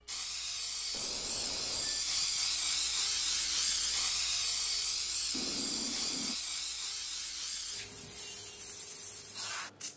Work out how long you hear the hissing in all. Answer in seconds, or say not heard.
10 s.